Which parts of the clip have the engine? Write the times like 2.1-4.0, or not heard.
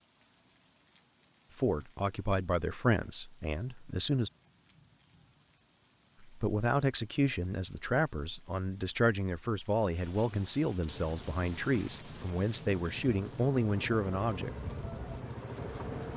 10.8-16.1.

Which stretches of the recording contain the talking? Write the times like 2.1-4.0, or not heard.
1.6-4.3, 6.2-14.5.